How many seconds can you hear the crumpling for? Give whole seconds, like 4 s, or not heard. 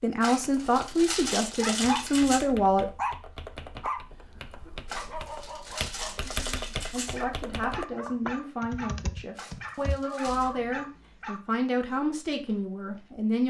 6 s.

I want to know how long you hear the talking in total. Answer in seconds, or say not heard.
9 s.